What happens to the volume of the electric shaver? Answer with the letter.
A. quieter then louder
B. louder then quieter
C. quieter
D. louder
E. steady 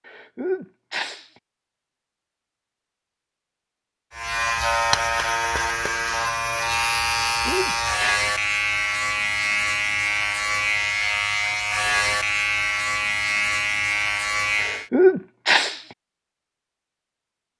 E.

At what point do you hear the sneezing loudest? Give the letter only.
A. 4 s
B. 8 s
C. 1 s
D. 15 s
D.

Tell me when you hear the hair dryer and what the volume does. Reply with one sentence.
The hair dryer can't be heard in this clip.